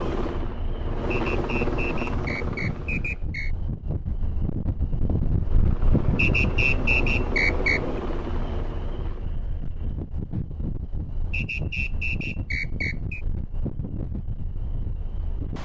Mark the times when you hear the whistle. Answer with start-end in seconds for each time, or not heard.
1.1-3.5, 6.2-7.8, 11.3-13.2.